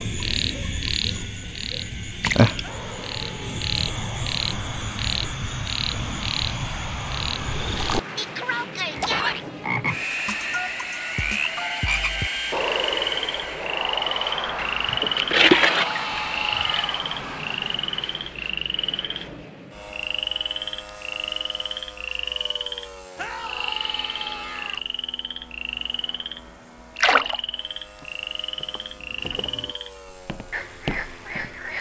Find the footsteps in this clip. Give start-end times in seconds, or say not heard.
27.8-31.6.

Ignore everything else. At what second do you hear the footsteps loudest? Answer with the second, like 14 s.
31 s.